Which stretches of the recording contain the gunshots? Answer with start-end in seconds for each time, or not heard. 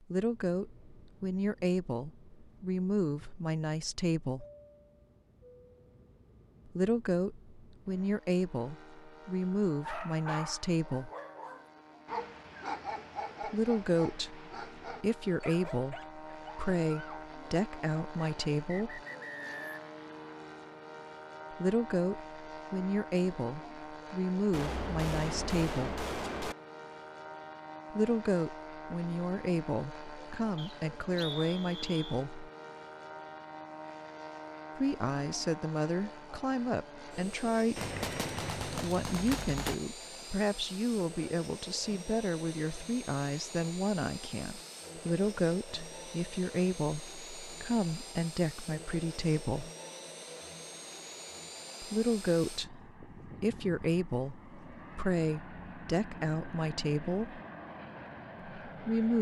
24.5-26.6, 37.8-39.8.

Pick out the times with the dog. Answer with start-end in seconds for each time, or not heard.
9.8-17.3.